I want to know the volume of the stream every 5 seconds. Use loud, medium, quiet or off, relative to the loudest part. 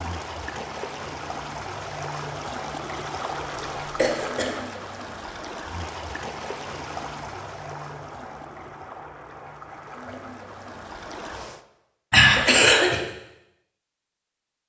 loud, loud, medium.